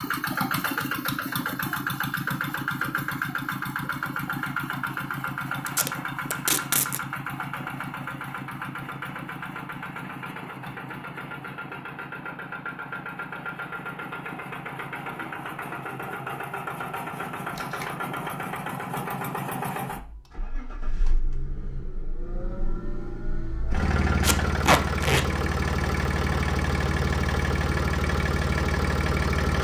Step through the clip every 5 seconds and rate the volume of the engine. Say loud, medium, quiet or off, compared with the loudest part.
loud, medium, medium, medium, medium, loud.